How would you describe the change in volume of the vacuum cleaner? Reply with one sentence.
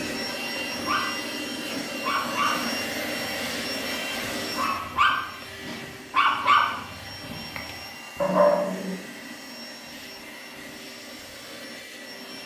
The loudness of the vacuum cleaner goes down.